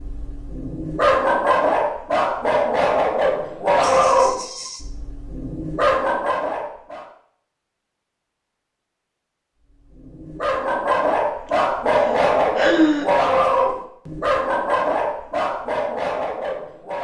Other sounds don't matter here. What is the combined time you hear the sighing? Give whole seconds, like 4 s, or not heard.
3 s.